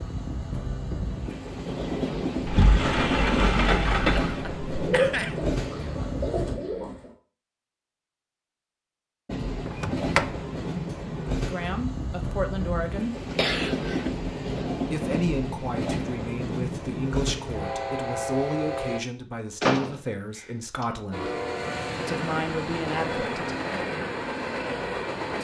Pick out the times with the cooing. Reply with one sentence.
You can hear the cooing from 4.7 to 7.1 s.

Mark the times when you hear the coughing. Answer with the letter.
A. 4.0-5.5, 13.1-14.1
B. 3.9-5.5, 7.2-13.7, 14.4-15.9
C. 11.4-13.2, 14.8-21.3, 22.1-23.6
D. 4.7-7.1
A.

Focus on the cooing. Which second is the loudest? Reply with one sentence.
The loudest moment of the cooing is at 5 seconds.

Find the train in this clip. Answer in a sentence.
The train can be heard from 0.0 to 6.5 s, from 9.2 to 19.0 s and from 21.1 to 25.3 s.